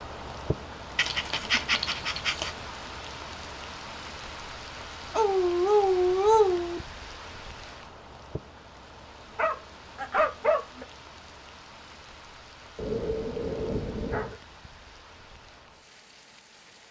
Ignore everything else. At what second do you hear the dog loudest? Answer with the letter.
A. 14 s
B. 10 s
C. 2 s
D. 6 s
D.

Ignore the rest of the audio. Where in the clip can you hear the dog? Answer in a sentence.
You can hear the dog from 0.9 to 2.5 s, from 5.1 to 6.8 s, from 9.3 to 10.8 s and from 12.8 to 14.3 s.